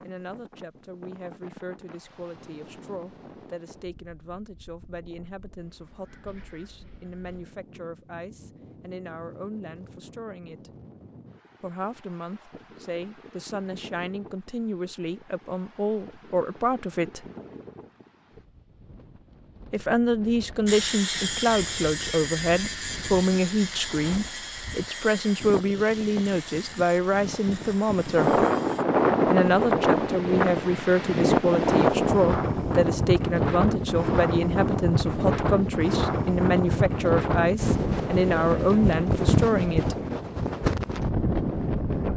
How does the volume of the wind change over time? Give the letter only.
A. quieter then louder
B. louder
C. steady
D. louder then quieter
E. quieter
B.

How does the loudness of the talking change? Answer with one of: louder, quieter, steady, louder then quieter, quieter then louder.
louder.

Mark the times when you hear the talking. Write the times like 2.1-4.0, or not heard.
0.0-10.7, 11.6-17.2, 19.7-28.4, 29.2-40.0.